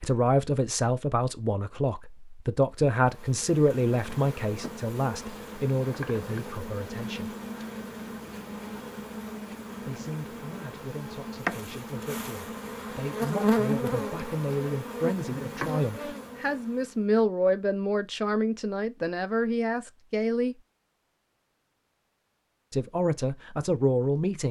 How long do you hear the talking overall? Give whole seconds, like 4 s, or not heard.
20 s.